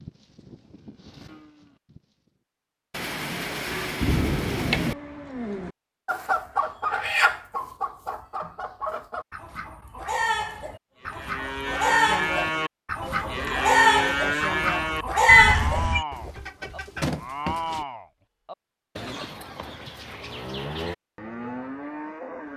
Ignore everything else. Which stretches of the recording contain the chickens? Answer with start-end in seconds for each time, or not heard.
6.0-17.8.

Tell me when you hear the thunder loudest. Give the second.
4 s.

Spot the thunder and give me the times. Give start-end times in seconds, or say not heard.
2.9-5.0.